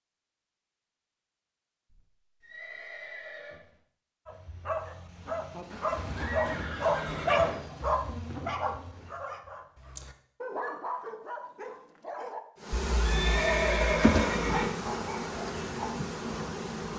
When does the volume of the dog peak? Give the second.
7 s.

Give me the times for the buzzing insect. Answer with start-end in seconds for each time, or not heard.
5.2-9.2, 12.6-16.9.